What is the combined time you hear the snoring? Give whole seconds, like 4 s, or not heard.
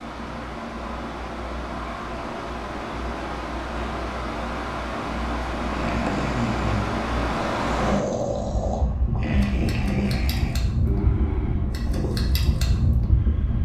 6 s.